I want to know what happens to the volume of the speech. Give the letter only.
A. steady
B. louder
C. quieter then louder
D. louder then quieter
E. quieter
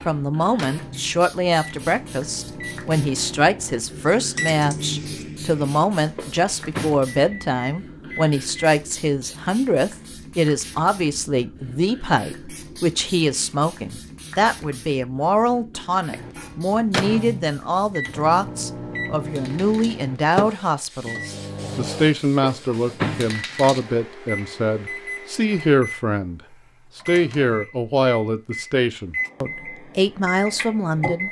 A.